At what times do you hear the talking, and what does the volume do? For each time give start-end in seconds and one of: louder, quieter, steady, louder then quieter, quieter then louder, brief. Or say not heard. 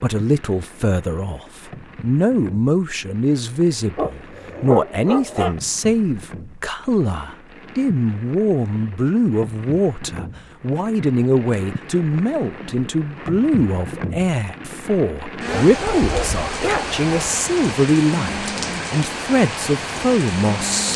0.0-20.9 steady.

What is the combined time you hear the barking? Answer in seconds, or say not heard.
4 s.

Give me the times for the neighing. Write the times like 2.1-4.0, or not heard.
not heard.